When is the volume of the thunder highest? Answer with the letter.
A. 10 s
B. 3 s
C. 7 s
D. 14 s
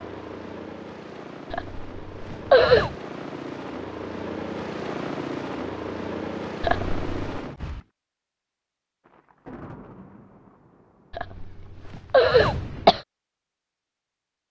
A.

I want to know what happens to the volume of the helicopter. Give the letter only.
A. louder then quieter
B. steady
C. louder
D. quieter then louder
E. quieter
C.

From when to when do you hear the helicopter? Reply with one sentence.
You can hear the helicopter from 0.0 to 7.8 s.